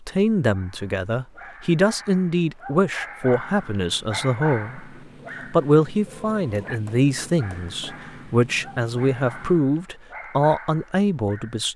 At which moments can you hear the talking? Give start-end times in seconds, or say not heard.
0.1-4.9, 5.5-11.7.